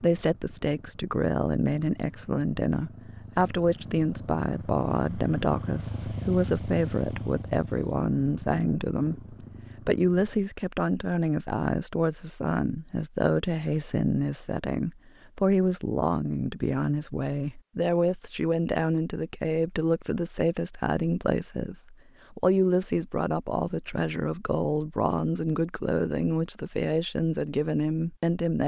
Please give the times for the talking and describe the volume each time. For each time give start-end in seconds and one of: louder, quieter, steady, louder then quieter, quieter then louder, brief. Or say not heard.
0.0-28.6 steady.